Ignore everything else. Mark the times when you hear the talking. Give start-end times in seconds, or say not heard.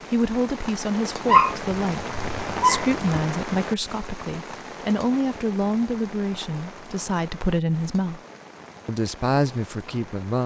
0.1-8.2, 8.8-10.4.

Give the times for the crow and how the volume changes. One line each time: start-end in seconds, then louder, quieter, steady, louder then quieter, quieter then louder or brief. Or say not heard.
not heard.